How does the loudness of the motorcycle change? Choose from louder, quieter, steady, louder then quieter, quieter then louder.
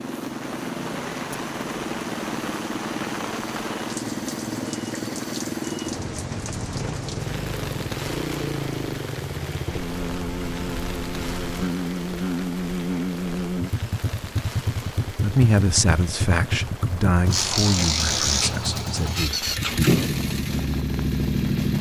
louder.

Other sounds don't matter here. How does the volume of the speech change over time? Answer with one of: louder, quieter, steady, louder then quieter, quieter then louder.
quieter.